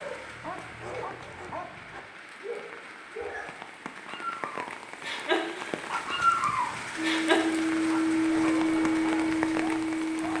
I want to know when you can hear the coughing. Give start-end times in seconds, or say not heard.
not heard.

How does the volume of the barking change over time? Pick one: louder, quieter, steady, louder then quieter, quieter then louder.
louder then quieter.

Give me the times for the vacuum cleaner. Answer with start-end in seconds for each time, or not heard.
7.0-10.3.